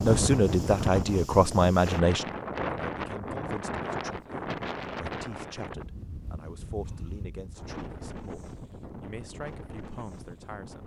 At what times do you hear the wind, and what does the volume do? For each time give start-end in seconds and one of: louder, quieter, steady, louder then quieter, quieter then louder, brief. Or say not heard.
0.0-10.8 quieter.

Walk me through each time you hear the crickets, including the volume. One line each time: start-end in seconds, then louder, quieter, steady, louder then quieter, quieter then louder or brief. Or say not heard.
not heard.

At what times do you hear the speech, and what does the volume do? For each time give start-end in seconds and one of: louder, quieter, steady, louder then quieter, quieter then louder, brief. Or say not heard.
0.0-10.8 quieter.